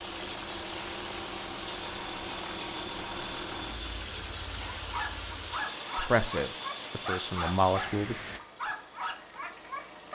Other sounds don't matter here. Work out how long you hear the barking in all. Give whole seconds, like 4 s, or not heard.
5 s.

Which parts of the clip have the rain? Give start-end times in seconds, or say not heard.
0.0-8.4.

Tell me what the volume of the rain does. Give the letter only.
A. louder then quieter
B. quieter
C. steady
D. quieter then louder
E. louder
C.